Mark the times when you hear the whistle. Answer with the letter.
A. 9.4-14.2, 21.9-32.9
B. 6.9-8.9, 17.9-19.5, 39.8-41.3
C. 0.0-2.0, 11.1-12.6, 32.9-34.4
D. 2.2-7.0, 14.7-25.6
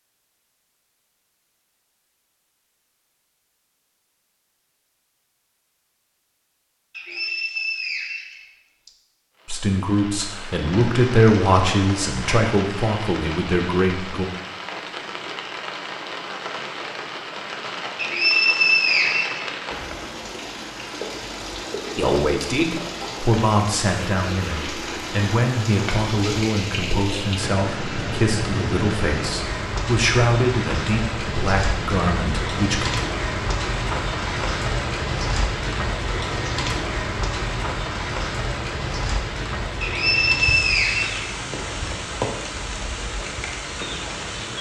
B.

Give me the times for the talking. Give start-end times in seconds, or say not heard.
9.4-14.2, 21.9-32.9.